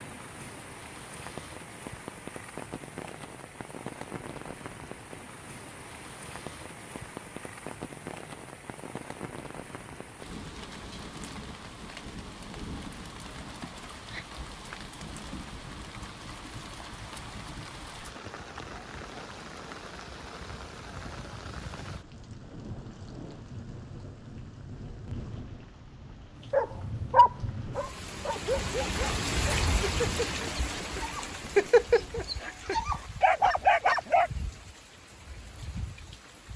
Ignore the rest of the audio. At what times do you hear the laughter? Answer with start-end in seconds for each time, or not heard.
13.6-14.2.